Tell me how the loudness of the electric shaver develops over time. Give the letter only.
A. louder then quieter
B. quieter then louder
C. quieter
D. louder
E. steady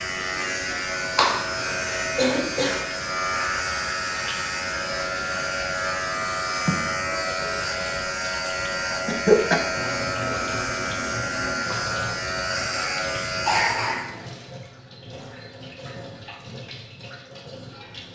E.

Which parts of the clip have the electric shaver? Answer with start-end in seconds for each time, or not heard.
0.0-14.2.